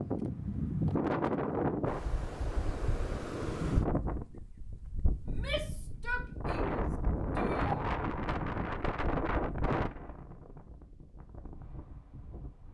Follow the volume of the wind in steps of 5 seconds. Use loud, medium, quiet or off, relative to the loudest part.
loud, loud, quiet.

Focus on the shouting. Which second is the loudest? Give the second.
6 s.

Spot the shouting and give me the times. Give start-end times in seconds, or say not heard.
5.2-7.8.